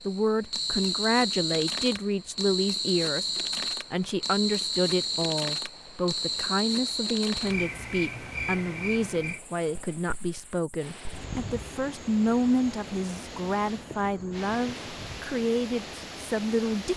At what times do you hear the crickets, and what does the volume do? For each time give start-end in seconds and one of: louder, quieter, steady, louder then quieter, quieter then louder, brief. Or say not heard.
0.0-16.9 quieter.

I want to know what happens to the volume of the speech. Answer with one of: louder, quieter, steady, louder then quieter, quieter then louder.
steady.